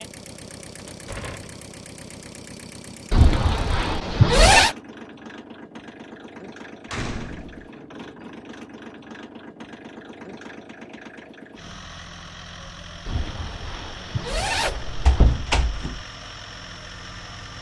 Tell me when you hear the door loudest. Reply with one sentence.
The loudest moment of the door is at 15 seconds.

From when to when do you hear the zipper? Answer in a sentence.
You can hear the zipper from 3.1 to 4.8 s and from 13.1 to 15.4 s.